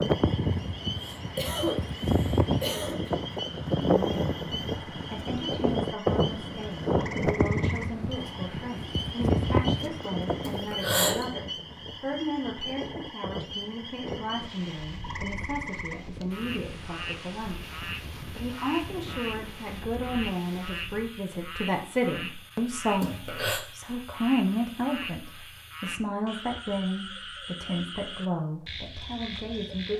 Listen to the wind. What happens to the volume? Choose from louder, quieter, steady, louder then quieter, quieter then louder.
quieter.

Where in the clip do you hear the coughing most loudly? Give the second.
11 s.